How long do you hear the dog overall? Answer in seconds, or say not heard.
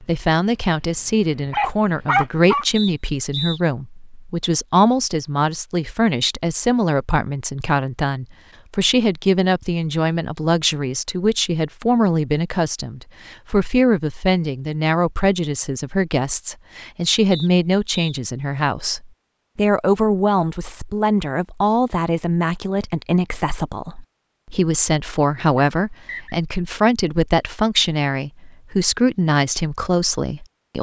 3 s.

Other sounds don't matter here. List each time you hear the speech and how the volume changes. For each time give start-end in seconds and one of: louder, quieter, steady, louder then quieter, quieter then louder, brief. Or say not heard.
0.0-30.7 steady.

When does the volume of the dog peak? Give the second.
2 s.